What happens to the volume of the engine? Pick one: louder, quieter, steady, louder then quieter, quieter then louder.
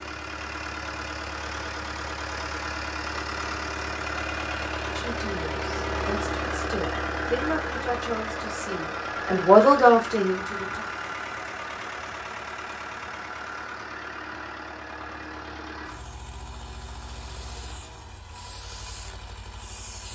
quieter.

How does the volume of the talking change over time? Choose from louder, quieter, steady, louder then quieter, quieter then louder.
louder.